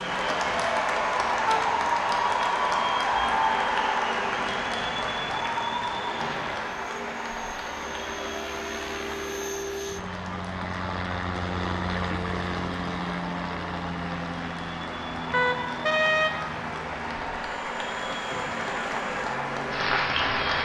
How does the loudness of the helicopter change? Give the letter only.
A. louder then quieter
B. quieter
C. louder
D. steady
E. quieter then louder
A.